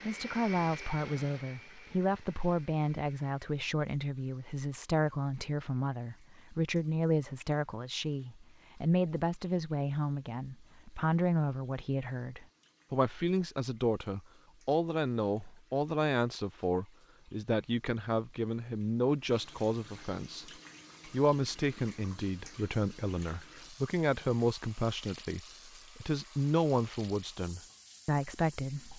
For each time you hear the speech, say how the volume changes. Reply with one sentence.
The speech can be heard from 0.0 to 28.9 s, at a steady volume.